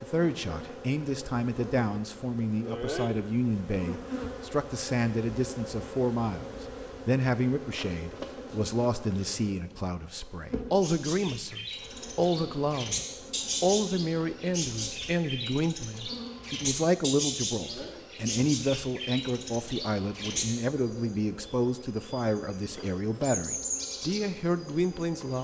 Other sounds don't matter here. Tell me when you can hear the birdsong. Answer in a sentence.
The birdsong can be heard from 10.8 to 25.3 s.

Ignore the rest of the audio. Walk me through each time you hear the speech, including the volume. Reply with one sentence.
The speech can be heard from 0.0 to 25.3 s, at a steady volume.